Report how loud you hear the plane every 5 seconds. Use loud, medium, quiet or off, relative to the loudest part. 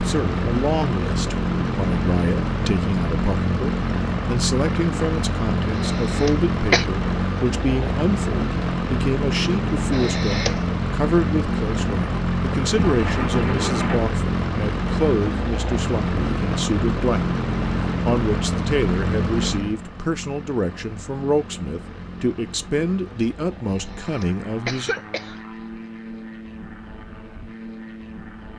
loud, loud, loud, loud, quiet, quiet.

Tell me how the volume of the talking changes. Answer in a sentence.
The volume of the talking stays about the same.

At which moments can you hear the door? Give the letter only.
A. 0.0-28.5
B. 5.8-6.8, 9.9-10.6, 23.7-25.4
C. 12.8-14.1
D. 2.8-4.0
C.